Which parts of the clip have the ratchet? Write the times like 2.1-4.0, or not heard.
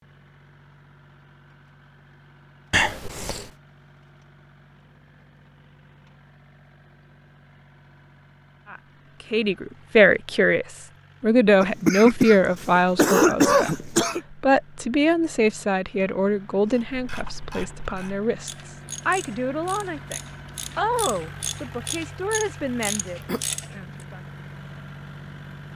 16.8-23.8.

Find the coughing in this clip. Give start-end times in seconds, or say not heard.
2.7-3.5, 11.6-14.2, 22.9-23.4.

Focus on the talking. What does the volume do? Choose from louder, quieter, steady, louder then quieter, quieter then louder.
quieter.